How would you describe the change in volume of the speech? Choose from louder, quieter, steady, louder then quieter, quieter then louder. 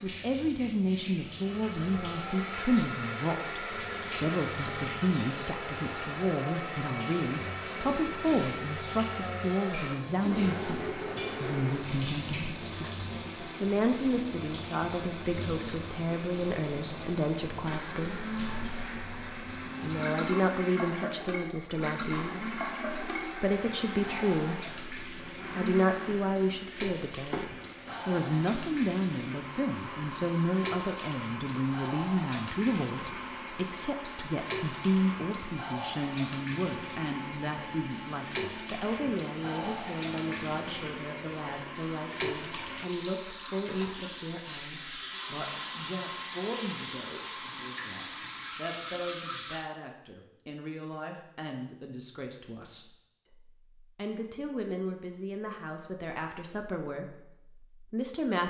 quieter.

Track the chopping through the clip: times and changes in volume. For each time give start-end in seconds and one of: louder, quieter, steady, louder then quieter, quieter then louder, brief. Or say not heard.
not heard.